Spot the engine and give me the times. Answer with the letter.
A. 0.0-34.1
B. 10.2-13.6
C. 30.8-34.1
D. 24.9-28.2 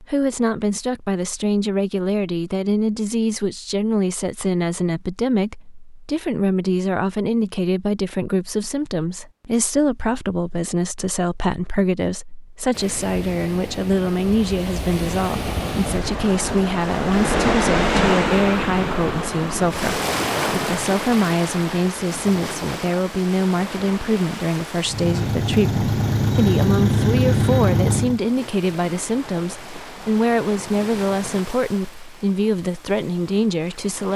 D.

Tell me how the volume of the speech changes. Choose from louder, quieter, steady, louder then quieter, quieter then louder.
steady.